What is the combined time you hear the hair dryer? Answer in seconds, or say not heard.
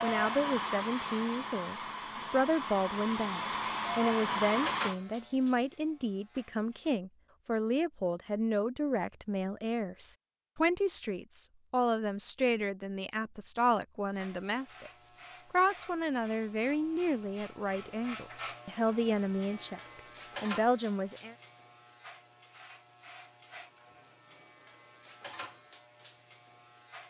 5 s.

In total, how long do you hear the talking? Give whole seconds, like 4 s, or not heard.
21 s.